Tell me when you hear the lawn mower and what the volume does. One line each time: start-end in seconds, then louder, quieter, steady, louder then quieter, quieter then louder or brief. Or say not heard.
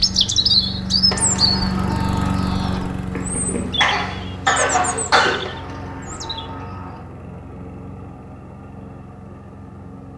0.0-10.1 quieter.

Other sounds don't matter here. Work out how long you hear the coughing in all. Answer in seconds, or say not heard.
2 s.